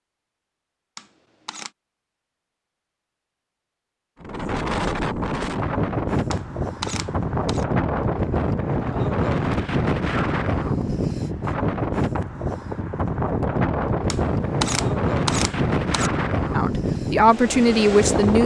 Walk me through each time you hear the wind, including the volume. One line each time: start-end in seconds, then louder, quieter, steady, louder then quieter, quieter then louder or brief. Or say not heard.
4.2-18.4 steady.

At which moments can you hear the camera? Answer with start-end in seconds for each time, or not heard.
0.9-1.7, 6.3-7.7, 14.1-16.1.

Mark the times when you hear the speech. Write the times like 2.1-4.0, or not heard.
16.5-18.4.